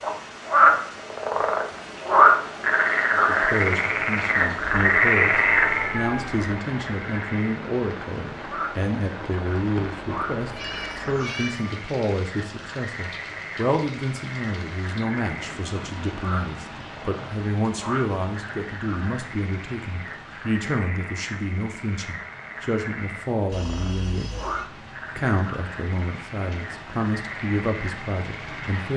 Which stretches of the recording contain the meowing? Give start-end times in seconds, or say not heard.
5.4-6.4, 10.4-11.8, 23.5-24.7.